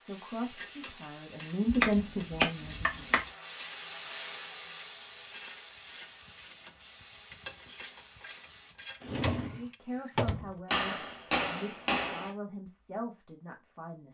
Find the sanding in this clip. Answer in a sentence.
You can't hear the sanding here.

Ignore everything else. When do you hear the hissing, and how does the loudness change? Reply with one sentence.
The hissing can be heard from 0.0 to 8.8 s, getting louder then quieter.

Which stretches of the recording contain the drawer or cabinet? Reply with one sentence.
You can hear the drawer or cabinet from 9.0 to 10.6 s.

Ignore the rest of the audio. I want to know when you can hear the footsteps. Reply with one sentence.
The footsteps can't be heard in this clip.